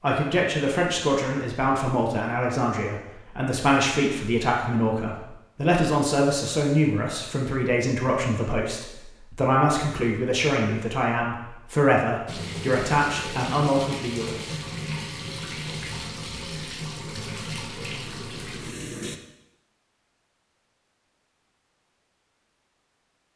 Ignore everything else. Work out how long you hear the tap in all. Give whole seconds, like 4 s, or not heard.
7 s.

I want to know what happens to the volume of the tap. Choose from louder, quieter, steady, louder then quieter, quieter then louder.
steady.